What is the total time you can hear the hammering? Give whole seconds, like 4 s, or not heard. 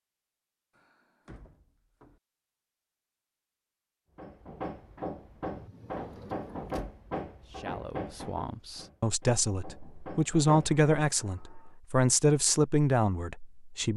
7 s.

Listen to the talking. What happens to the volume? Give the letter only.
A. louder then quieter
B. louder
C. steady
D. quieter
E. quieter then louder
B.